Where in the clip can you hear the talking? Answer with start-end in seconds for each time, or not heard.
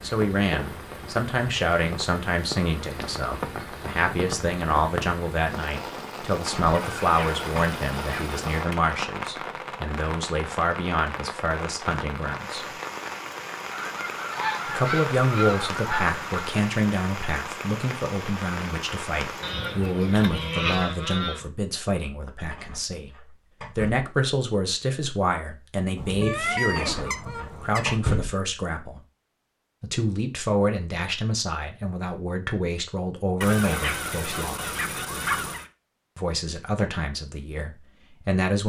0.0-12.7, 14.7-29.0, 29.8-34.8, 36.1-38.6.